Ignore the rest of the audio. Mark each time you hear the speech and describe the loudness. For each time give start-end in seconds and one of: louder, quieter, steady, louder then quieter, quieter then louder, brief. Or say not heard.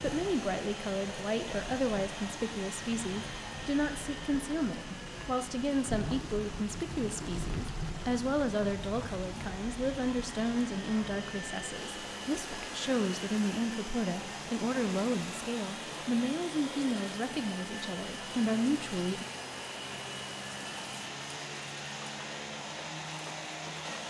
0.0-19.2 steady.